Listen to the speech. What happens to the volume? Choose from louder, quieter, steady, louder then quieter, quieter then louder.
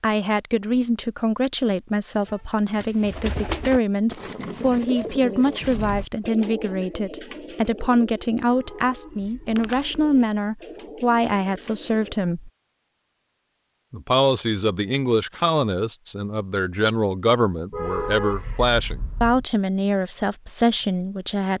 steady.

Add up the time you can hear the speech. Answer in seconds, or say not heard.
20 s.